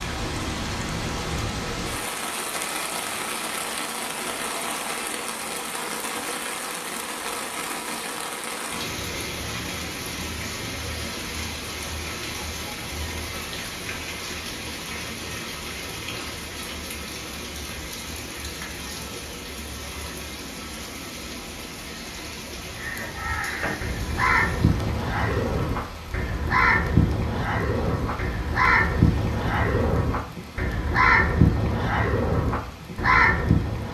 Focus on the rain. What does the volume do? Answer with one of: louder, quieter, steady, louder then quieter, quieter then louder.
quieter.